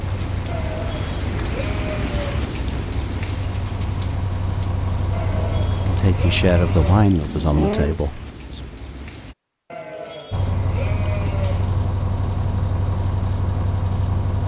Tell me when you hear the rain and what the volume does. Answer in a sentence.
The rain can be heard from 0.0 to 9.3 s, getting quieter.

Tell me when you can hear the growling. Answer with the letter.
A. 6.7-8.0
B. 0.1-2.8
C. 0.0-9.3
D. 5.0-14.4
A.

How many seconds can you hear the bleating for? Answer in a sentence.
The bleating can be heard for 7 seconds in total.